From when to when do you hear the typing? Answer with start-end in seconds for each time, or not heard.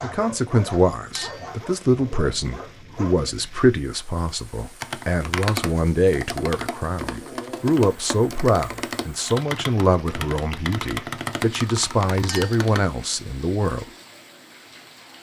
4.8-12.8.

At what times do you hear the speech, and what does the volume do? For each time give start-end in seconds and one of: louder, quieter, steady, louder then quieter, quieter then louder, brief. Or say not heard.
0.0-13.8 steady.